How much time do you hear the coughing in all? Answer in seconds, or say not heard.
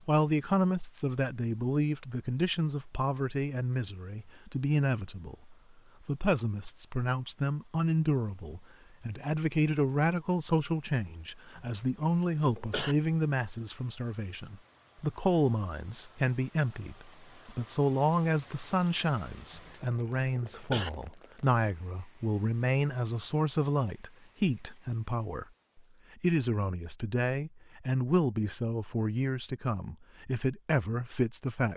3 s.